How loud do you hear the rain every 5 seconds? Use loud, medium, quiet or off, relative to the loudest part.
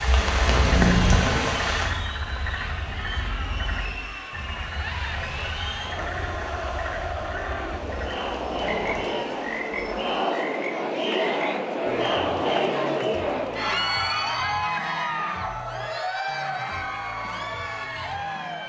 loud, quiet, off, off.